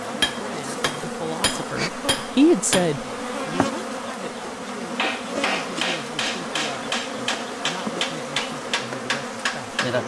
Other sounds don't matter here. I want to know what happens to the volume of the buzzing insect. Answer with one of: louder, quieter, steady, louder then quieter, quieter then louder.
steady.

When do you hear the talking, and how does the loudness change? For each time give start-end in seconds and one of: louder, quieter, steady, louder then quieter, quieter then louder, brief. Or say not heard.
0.0-9.8 louder then quieter.